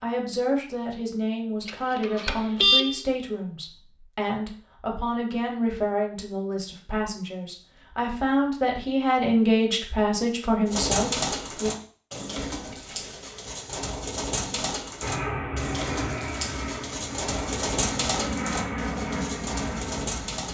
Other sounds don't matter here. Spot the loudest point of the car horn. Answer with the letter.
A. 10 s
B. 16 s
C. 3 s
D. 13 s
C.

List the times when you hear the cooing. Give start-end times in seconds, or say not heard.
10.7-20.4.